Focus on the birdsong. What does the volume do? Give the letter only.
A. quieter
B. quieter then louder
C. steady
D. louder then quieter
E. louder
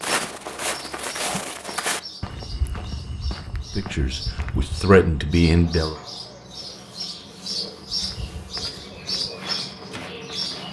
E.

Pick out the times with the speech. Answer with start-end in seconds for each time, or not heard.
3.8-6.0.